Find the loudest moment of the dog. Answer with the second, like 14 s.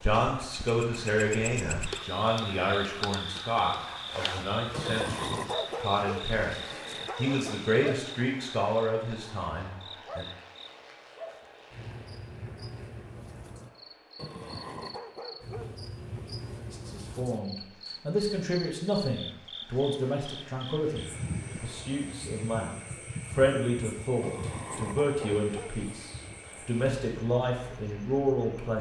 5 s.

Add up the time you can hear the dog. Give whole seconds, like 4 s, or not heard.
6 s.